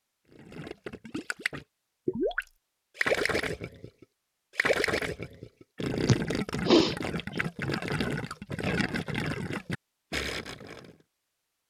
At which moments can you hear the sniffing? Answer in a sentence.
The sniffing can be heard from 6.0 to 7.3 s.